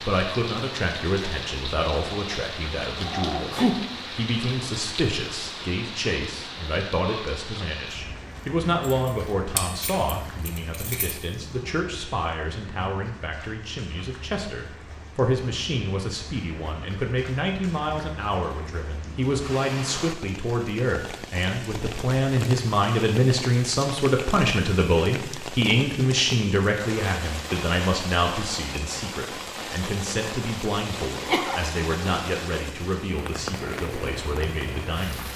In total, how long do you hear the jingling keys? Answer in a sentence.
The jingling keys can be heard for 2 seconds in total.